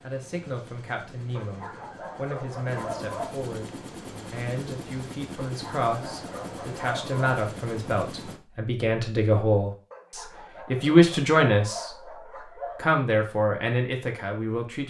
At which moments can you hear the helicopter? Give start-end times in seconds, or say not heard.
0.0-8.4.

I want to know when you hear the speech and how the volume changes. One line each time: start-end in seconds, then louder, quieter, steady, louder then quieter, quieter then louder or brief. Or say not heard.
0.0-11.9 louder
12.8-14.8 brief.